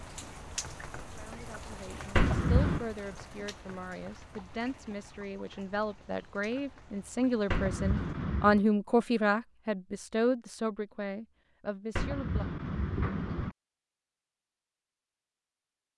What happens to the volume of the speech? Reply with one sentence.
The loudness of the speech goes up, then down.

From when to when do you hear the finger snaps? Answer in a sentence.
You can hear the finger snaps from 2.1 to 2.9 s, from 7.5 to 8.6 s and from 11.9 to 13.6 s.